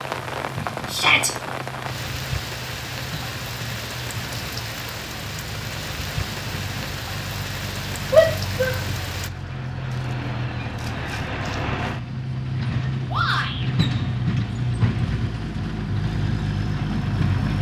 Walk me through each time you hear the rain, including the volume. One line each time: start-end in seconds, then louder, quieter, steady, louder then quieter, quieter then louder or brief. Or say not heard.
0.0-9.3 steady.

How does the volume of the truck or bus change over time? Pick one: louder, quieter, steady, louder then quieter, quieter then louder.
louder.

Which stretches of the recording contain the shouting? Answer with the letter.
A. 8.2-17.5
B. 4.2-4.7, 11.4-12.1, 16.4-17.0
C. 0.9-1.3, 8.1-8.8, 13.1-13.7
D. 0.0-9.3
C.